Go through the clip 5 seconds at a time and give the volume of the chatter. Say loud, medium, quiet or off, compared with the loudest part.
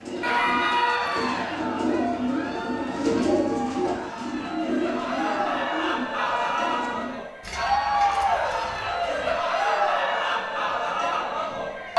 medium, loud, loud.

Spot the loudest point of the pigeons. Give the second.
3 s.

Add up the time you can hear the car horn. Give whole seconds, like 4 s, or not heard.
2 s.